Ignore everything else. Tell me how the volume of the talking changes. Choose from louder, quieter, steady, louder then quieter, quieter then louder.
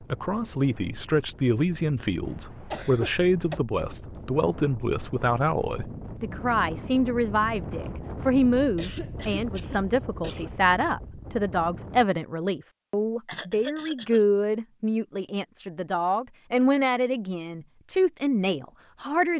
steady.